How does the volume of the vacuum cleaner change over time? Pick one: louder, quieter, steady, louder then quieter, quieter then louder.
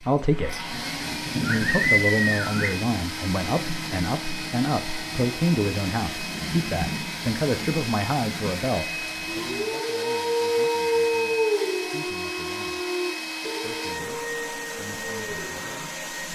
steady.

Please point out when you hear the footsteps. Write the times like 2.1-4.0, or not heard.
not heard.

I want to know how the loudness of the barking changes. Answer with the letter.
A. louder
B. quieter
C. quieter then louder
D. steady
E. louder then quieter
B.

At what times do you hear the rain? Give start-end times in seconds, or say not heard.
0.0-9.6.